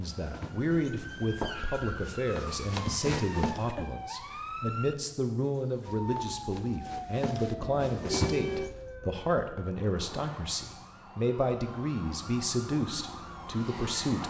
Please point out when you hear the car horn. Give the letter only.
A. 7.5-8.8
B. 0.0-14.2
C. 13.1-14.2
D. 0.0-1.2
A.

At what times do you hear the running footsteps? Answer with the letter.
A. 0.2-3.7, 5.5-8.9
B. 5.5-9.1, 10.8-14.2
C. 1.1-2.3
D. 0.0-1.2
A.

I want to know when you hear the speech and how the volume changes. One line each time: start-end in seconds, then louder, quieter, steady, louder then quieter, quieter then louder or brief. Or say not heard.
0.0-14.2 steady.